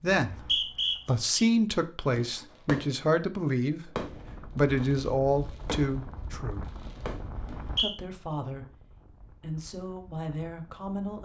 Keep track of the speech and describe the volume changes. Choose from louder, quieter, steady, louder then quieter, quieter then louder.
quieter.